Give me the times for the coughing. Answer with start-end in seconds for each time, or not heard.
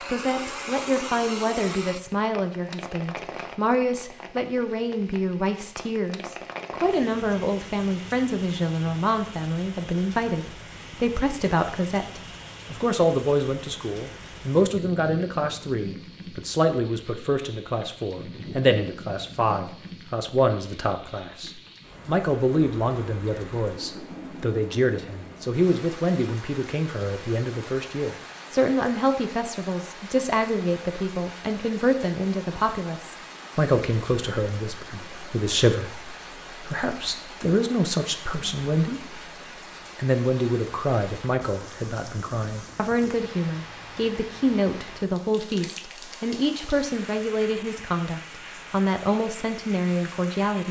not heard.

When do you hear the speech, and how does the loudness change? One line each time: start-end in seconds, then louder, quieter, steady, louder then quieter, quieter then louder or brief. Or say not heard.
0.1-39.2 steady
40.0-50.6 steady.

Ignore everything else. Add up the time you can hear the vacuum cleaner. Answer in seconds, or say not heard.
2 s.